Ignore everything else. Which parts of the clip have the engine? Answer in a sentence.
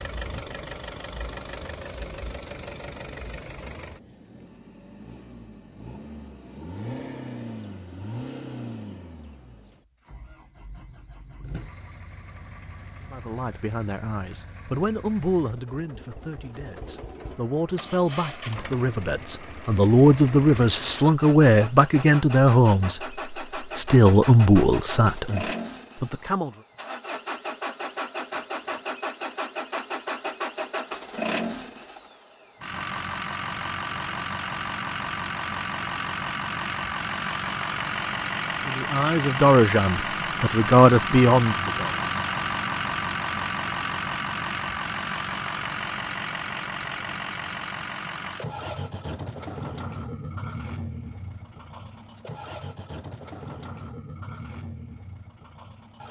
You can hear the engine from 0.0 to 56.0 s.